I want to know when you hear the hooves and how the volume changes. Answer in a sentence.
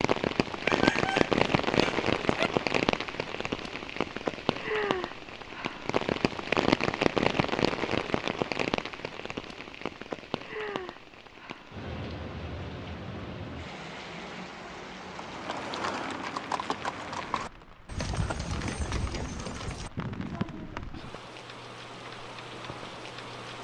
The hooves can be heard from 15.1 to 20.9 s, at a steady volume.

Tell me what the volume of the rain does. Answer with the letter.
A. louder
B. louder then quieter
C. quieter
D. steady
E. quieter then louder
C.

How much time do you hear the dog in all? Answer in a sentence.
The dog can be heard for 2 seconds in total.